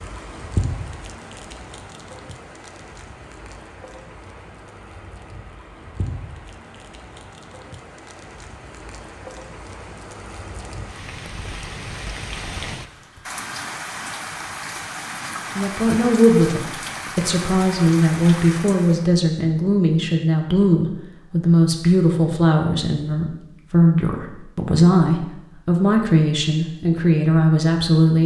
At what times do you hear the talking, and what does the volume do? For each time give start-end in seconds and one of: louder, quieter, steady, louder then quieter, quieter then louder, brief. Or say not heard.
15.6-28.2 steady.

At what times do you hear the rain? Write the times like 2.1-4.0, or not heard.
0.0-19.1.